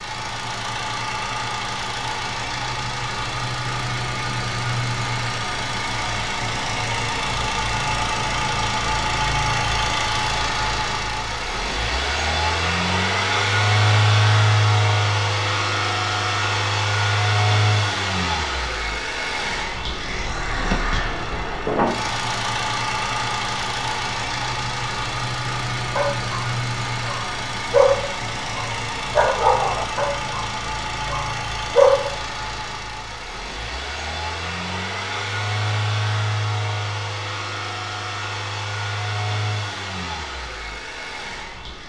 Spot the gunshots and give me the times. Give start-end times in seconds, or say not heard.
not heard.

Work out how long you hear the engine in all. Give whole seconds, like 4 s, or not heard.
42 s.